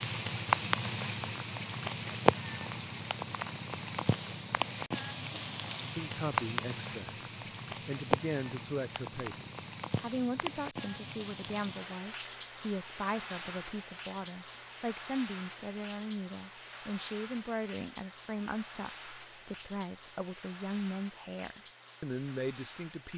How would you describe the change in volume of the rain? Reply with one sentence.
The volume of the rain goes down.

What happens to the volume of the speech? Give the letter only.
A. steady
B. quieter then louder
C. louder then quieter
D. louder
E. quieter
A.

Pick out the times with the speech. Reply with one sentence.
The speech can be heard from 6.0 to 23.1 s.